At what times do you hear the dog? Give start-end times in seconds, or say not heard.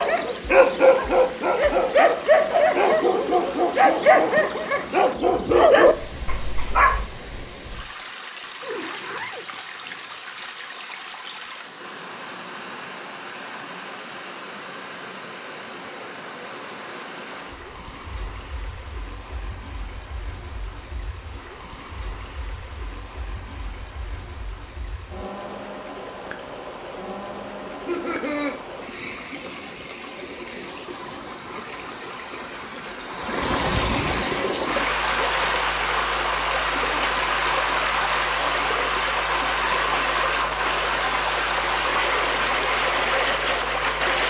0.0-7.0.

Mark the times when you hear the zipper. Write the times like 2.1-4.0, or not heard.
8.6-10.4.